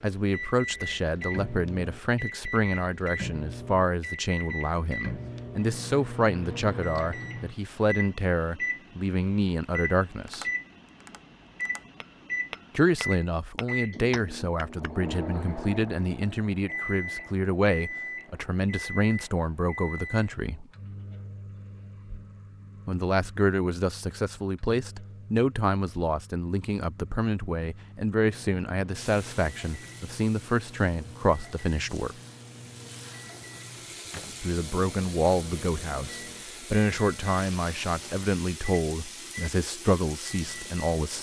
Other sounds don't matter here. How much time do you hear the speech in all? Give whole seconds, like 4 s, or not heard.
34 s.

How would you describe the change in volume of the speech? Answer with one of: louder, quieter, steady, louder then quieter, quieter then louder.
steady.